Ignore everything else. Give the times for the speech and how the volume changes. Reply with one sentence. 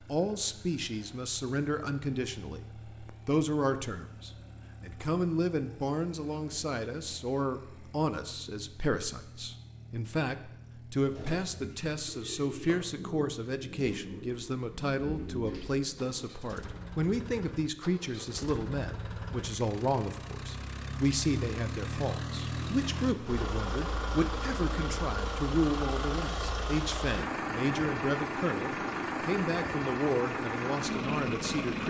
The speech can be heard from 0.0 to 31.8 s, at a steady volume.